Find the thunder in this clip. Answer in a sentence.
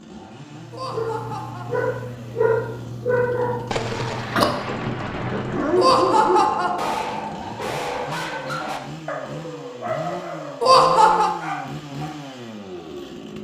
The thunder can be heard from 3.7 to 6.5 s.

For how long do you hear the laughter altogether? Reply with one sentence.
You can hear the laughter for 3 seconds altogether.